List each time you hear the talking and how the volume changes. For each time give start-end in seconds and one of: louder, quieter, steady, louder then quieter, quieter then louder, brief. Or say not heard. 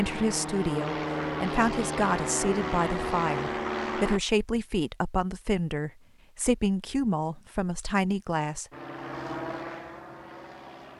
0.0-8.7 steady.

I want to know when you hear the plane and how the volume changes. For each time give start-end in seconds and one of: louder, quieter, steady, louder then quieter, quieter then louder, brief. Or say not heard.
0.0-4.2 steady
8.7-10.9 brief.